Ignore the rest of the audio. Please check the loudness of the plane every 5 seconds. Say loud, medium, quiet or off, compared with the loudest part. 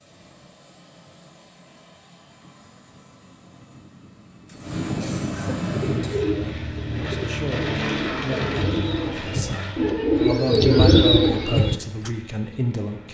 medium, loud, quiet.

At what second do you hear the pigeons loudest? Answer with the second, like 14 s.
11 s.